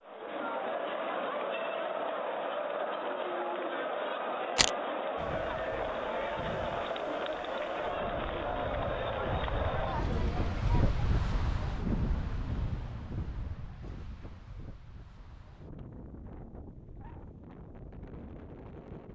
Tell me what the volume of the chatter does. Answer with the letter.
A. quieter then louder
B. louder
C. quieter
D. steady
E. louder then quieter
D.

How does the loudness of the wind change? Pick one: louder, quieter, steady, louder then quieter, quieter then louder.
louder then quieter.